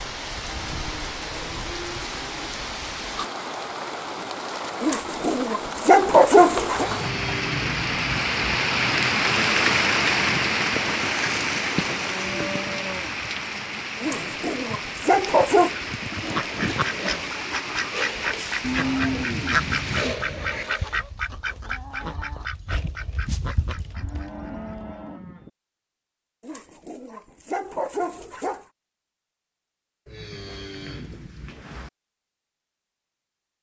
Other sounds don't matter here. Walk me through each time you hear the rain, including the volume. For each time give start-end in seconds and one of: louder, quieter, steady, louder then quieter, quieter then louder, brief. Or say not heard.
0.0-20.1 louder then quieter.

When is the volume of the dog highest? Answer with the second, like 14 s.
6 s.